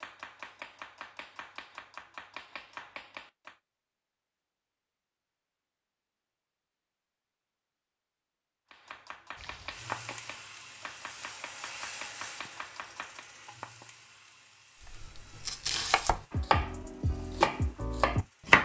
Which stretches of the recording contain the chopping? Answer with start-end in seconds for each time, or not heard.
0.0-3.5, 8.7-13.2, 14.8-18.6.